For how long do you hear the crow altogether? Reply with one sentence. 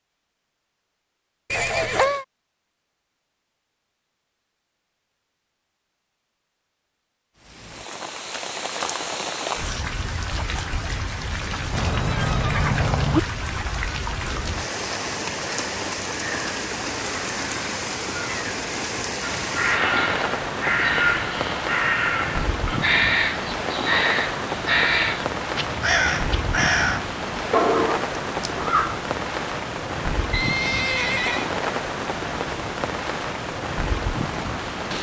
You can hear the crow for 10 seconds altogether.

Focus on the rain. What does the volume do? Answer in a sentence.
The loudness of the rain stays about the same.